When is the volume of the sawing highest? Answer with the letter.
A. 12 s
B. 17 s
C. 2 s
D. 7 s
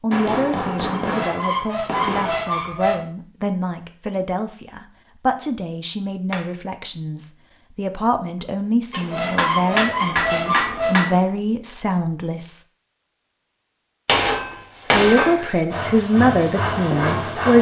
B.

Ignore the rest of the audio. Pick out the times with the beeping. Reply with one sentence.
You can't hear the beeping here.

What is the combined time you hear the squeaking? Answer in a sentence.
You can hear the squeaking for 4 seconds altogether.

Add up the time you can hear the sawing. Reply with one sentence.
You can hear the sawing for 2 seconds altogether.